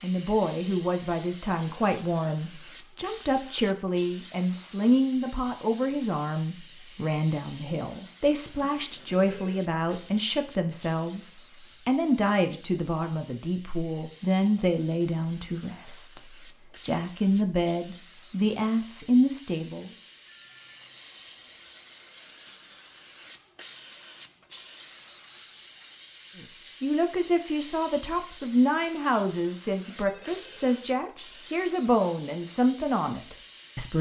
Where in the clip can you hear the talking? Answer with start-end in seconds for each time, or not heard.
0.0-19.9, 26.4-33.9.